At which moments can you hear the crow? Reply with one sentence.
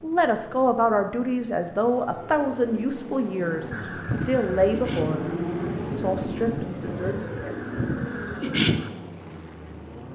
The crow can be heard from 3.7 to 8.9 s.